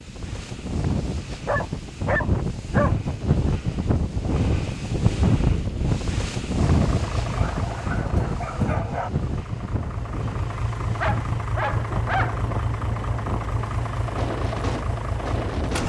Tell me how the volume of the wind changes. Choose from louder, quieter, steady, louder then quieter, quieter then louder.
quieter.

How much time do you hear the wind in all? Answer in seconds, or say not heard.
16 s.